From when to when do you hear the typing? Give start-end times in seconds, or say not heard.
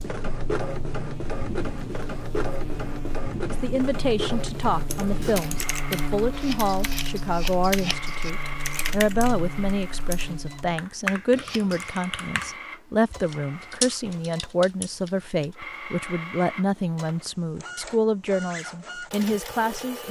4.7-15.4.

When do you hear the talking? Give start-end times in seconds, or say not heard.
3.5-20.0.